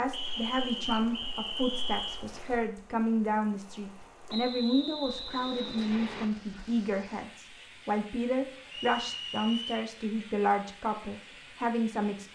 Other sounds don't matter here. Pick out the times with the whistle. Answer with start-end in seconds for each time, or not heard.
0.1-2.2, 4.2-6.3, 8.7-9.9.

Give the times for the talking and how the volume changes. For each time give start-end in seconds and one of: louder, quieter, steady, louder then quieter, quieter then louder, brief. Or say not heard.
0.0-12.3 steady.